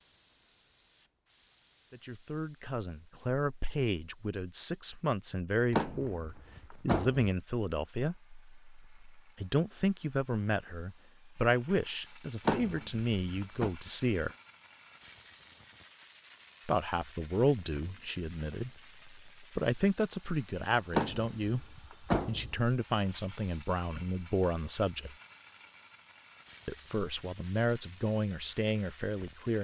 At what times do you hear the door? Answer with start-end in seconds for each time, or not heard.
5.7-7.2, 12.4-13.7, 20.9-22.6.